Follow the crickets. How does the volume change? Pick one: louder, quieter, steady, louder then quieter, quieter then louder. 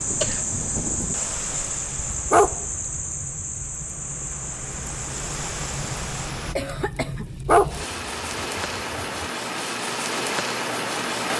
quieter.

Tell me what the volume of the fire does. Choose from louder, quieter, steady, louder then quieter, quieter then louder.
louder.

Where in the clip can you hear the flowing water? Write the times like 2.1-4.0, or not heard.
0.0-6.5.